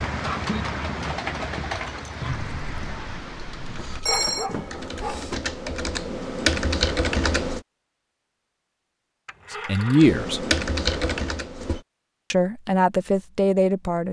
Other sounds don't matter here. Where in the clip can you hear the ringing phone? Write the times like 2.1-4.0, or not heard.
3.8-5.4, 9.2-10.1.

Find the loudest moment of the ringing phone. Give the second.
4 s.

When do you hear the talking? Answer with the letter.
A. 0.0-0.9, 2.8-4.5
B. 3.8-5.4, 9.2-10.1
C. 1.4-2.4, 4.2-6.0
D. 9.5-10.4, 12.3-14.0
D.